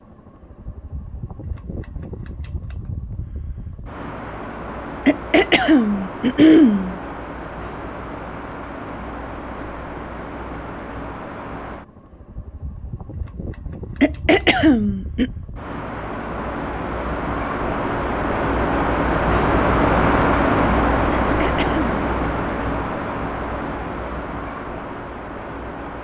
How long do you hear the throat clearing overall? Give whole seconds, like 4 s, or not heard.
4 s.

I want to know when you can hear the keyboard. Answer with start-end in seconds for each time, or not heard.
not heard.